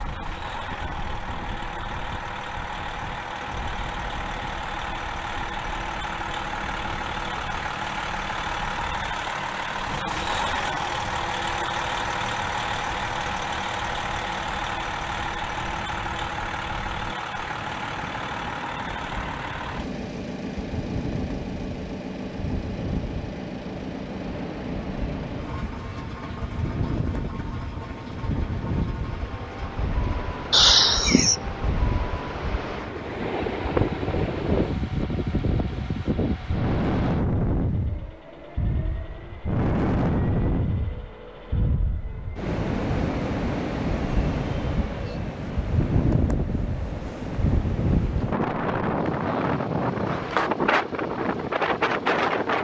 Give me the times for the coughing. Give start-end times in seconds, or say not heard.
30.5-31.5.